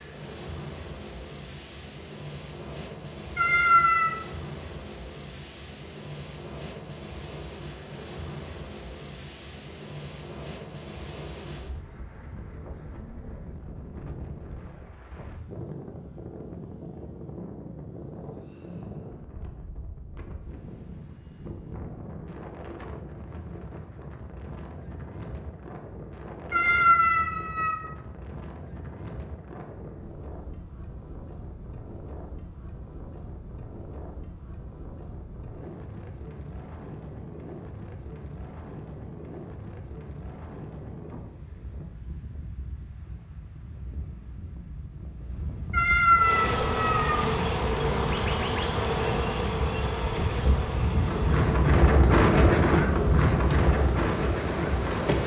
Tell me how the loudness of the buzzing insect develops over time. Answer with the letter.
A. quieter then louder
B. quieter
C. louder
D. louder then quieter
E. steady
B.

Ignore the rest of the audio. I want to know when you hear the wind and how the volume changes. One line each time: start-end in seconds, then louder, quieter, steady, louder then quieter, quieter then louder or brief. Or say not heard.
0.0-55.2 louder.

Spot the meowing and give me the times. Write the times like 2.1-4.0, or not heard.
3.4-4.2, 26.5-27.8, 45.7-47.2.